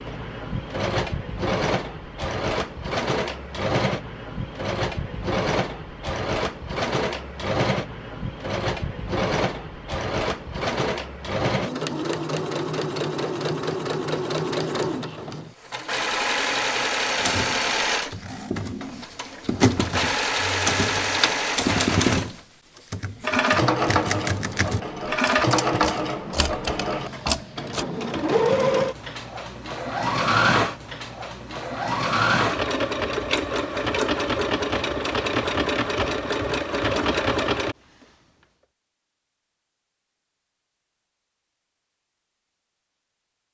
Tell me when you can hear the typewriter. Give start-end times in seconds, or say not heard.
17.1-27.9.